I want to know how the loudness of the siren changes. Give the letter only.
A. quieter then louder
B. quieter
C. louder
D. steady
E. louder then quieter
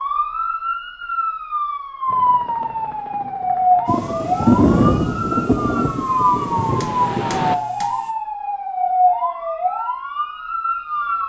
D.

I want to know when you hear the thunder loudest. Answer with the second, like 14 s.
5 s.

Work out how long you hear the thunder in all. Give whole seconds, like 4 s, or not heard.
4 s.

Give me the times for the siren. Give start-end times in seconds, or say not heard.
0.0-11.2.